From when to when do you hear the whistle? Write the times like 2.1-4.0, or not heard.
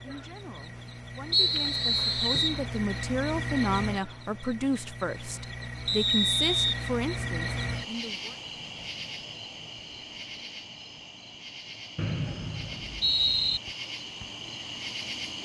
1.3-2.6, 5.8-6.8, 11.9-13.6.